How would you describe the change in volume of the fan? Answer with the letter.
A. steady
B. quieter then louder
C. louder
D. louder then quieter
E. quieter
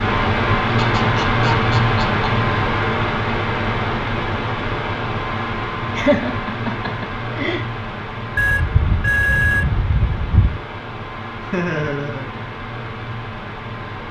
E.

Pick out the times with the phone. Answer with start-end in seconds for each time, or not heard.
8.3-10.6.